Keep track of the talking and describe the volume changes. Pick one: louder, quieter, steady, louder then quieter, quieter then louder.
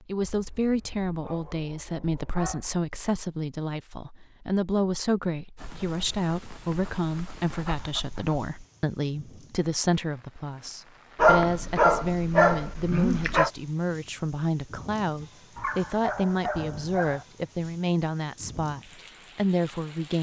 steady.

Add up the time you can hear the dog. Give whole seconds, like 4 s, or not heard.
9 s.